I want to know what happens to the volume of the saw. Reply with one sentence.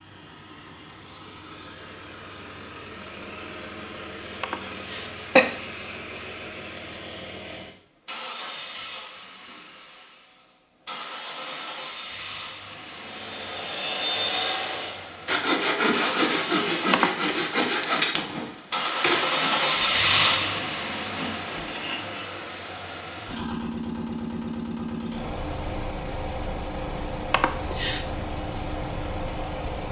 The volume of the saw goes down.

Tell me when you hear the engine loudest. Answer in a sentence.
The volume of the engine peaks at 20 seconds.